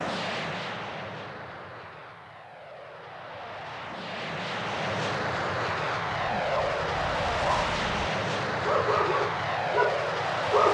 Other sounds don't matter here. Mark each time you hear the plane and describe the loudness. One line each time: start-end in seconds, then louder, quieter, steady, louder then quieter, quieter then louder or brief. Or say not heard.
0.0-10.7 louder.